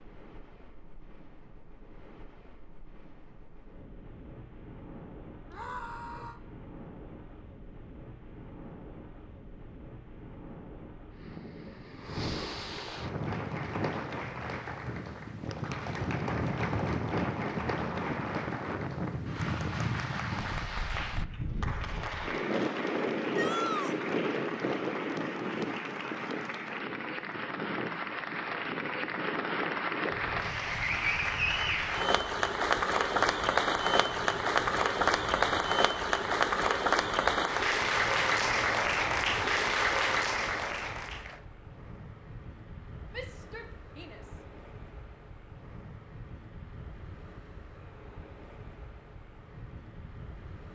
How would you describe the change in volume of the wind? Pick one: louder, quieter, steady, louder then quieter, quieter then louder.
louder then quieter.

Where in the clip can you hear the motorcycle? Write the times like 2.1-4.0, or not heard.
not heard.